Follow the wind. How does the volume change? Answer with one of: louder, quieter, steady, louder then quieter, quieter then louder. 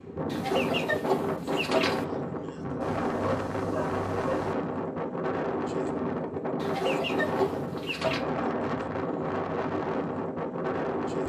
steady.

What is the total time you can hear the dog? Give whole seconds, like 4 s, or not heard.
2 s.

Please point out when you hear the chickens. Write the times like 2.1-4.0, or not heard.
0.3-2.0, 6.6-8.2.